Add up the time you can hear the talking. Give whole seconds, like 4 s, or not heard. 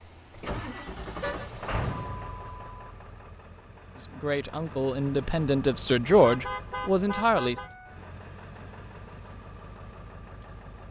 4 s.